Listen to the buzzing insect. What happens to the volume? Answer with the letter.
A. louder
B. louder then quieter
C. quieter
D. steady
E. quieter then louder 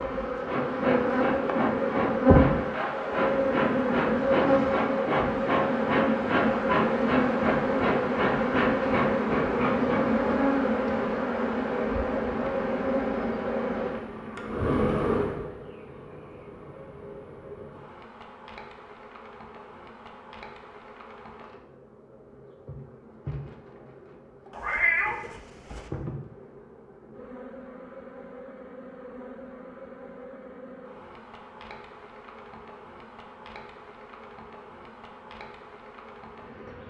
C.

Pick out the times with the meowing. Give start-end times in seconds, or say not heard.
24.5-25.9.